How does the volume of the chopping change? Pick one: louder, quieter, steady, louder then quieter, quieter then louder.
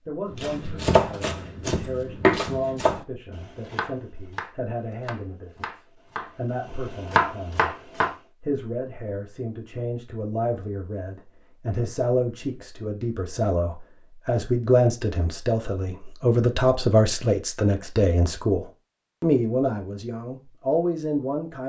quieter then louder.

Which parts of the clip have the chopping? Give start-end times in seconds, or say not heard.
0.3-8.2.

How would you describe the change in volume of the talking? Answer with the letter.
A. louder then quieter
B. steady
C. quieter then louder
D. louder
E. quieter
D.